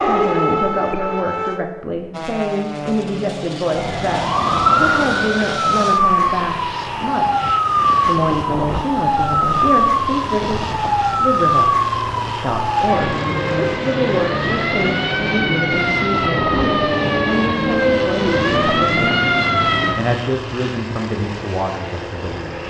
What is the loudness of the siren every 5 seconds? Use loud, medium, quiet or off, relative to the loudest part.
loud, loud, loud, loud, off.